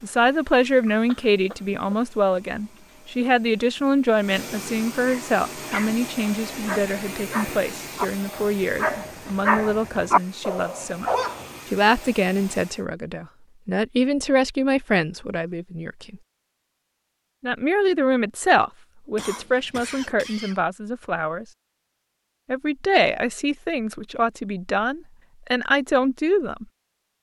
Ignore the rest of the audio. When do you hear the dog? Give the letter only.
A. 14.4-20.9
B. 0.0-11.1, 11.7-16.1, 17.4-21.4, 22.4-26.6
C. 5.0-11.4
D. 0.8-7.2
C.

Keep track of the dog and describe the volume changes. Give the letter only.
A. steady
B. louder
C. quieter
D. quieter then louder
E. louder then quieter
B.